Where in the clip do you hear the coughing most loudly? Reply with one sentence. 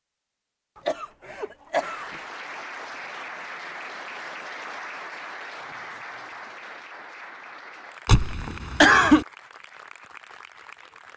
The volume of the coughing peaks at 9 seconds.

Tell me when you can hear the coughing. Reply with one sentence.
The coughing can be heard from 0.8 to 2.1 s and from 8.1 to 9.2 s.